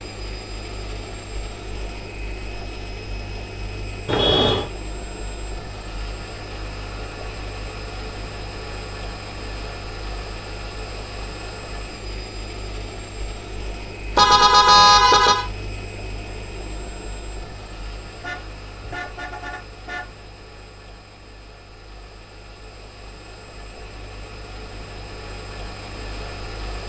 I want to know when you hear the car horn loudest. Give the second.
15 s.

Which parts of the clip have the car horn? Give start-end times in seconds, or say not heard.
4.0-4.7, 14.2-15.4, 18.2-20.1.